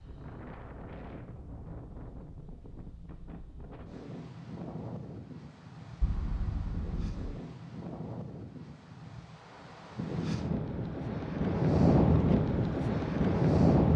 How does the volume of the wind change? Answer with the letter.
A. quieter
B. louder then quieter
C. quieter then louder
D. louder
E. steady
D.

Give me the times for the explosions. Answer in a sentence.
You can hear the explosions from 6.0 to 7.3 s.